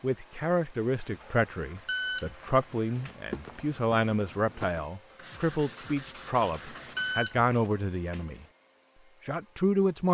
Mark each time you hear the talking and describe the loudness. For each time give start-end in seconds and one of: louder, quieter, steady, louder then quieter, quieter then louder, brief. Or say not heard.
0.0-8.4 steady
9.2-10.0 brief.